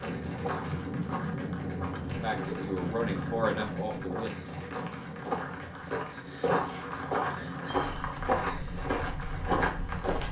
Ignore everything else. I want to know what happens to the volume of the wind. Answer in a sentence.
The loudness of the wind goes down.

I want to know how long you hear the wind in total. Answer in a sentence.
The wind can be heard for 10 seconds in total.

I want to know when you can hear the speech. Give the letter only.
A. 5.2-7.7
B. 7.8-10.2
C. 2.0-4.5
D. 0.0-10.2
C.